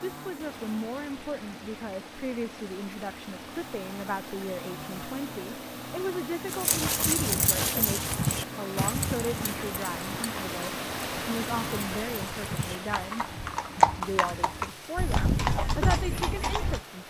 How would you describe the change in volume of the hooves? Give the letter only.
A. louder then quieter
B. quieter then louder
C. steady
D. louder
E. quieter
B.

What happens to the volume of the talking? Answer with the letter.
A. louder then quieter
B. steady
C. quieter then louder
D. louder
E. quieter
B.